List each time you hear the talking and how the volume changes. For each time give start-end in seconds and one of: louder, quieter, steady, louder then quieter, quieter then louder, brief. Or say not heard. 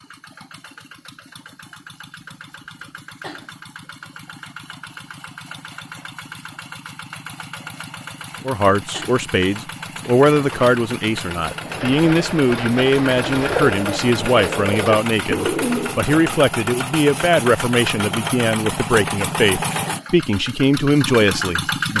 8.4-21.9 steady.